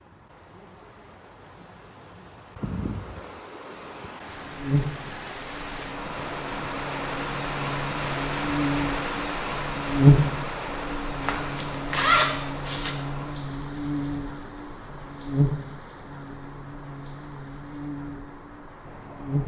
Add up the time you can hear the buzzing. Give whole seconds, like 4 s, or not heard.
15 s.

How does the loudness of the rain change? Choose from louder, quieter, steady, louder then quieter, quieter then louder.
louder then quieter.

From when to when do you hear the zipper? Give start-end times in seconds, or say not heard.
11.2-12.9.